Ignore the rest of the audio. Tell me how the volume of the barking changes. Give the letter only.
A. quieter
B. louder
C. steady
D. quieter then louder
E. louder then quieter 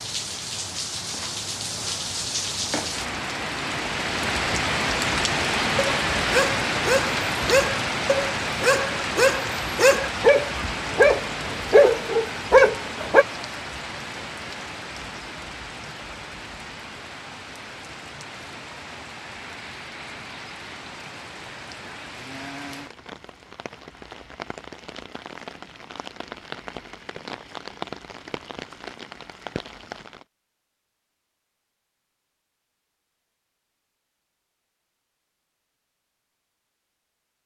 B.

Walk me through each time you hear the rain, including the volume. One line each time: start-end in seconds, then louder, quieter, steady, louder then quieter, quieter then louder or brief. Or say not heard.
0.0-30.2 quieter.